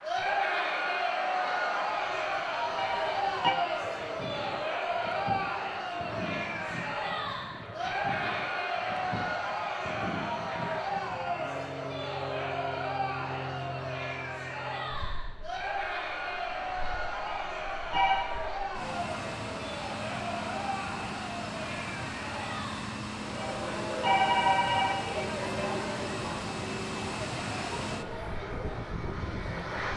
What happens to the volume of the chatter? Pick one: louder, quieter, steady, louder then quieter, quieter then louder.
quieter.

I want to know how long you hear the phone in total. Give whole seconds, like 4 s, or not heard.
4 s.